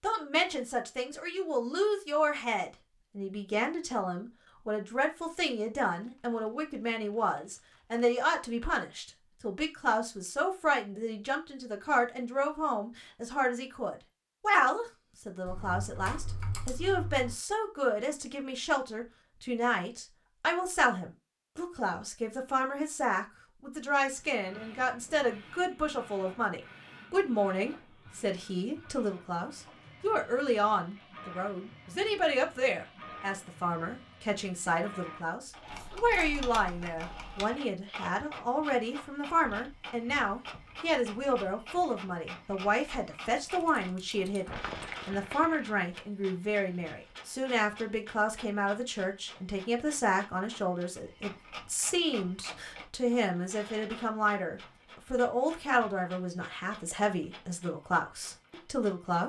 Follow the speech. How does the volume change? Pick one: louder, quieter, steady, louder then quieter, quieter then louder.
steady.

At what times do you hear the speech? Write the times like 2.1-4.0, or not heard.
0.0-59.2.